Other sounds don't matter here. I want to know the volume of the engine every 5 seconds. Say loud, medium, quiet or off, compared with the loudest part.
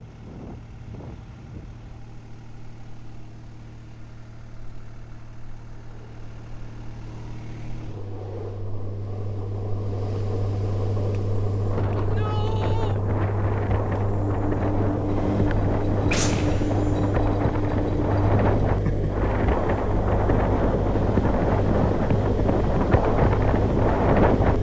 quiet, medium, loud, loud, loud.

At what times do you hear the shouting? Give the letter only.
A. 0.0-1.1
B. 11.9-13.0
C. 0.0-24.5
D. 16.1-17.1
B.